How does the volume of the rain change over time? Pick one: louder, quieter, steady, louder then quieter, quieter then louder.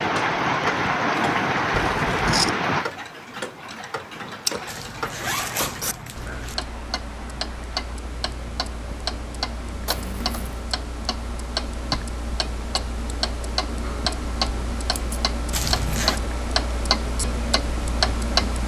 quieter.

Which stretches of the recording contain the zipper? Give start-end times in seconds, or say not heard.
4.7-6.5, 15.5-16.2.